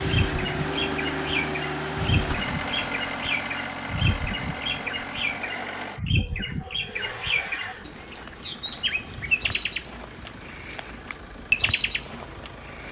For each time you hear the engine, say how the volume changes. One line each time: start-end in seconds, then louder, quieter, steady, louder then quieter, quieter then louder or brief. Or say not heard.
0.0-12.8 quieter.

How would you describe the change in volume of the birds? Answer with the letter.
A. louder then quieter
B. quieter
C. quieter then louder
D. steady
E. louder
D.